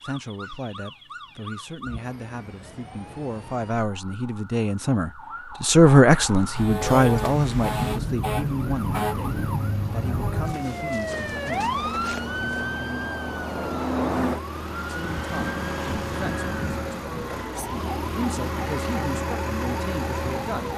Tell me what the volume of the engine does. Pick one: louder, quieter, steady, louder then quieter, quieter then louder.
louder.